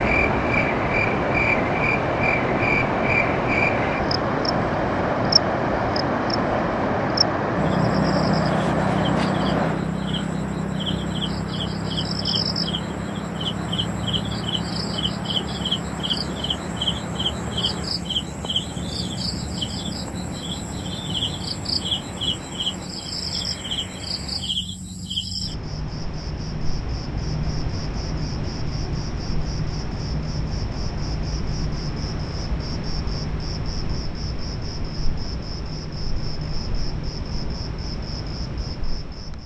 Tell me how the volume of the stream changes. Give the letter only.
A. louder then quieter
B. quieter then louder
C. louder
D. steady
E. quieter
E.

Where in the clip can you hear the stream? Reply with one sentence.
You can hear the stream from 0.0 to 24.6 s.